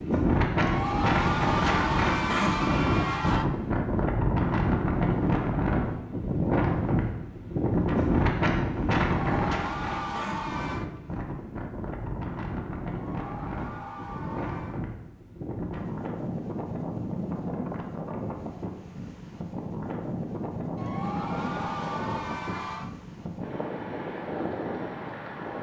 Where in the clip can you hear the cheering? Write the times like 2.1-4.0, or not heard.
0.6-3.5, 9.0-10.8, 12.9-14.8, 20.8-22.9.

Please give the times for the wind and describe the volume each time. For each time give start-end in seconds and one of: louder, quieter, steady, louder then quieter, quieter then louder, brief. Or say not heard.
0.0-25.5 quieter.